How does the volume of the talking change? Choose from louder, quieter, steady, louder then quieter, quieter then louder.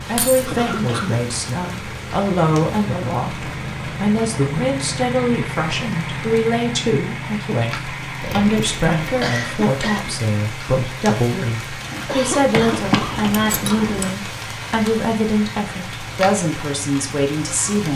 steady.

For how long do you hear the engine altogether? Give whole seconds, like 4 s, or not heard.
18 s.